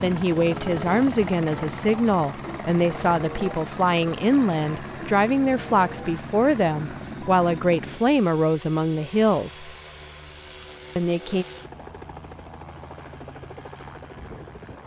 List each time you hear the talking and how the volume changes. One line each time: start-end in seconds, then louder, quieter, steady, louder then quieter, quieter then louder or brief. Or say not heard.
0.0-9.7 steady
10.9-11.4 brief.